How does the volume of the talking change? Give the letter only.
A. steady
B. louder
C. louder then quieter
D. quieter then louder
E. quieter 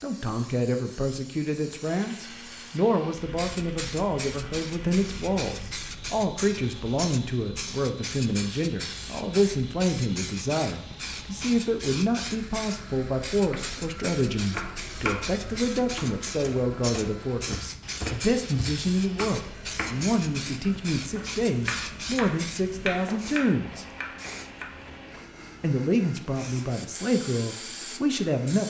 A.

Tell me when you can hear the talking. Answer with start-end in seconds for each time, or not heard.
0.0-23.9, 25.6-28.6.